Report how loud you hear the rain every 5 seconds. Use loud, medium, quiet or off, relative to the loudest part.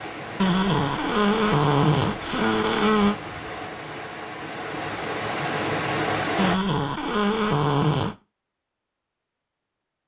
medium, loud.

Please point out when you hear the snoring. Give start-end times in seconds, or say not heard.
0.3-3.1, 6.3-8.2.